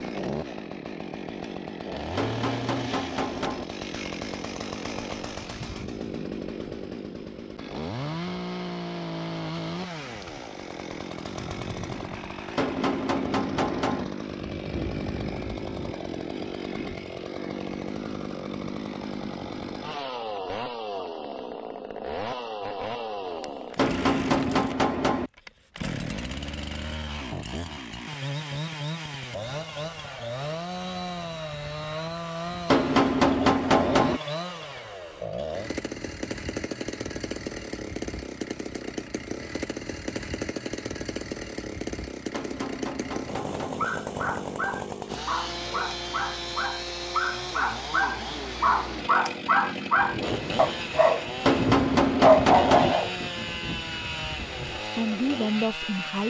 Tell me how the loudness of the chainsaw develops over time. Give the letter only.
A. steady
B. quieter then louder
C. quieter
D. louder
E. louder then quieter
A.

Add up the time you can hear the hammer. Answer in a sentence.
You can hear the hammer for 9 seconds altogether.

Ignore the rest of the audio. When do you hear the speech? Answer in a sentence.
The speech can be heard from 54.9 to 56.2 s.